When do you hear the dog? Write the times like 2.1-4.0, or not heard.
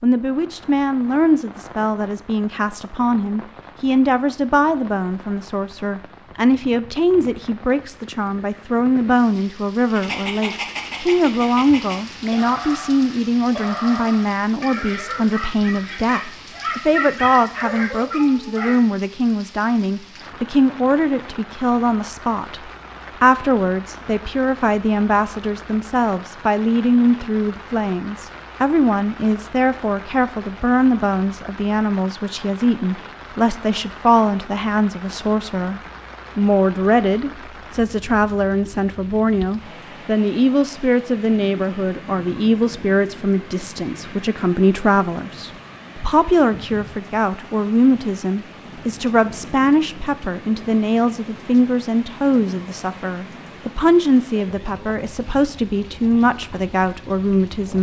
9.9-18.8.